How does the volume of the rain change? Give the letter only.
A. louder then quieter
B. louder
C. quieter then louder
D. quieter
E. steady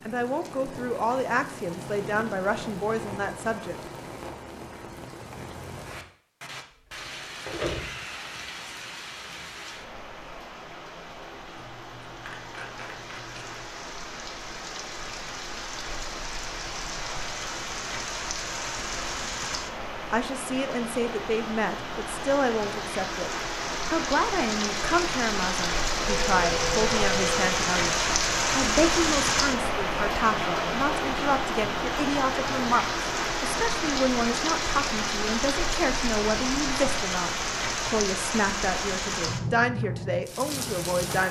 B.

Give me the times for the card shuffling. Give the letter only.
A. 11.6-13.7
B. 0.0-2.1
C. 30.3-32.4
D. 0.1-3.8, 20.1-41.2
A.